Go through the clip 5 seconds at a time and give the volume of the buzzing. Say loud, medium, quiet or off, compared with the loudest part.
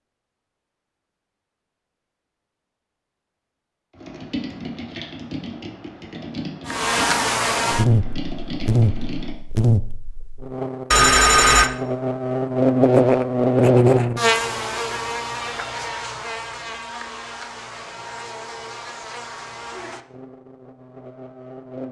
off, loud, loud, quiet, quiet.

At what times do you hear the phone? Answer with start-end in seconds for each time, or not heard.
10.9-11.7.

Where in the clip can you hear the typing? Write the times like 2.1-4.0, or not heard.
3.9-9.3.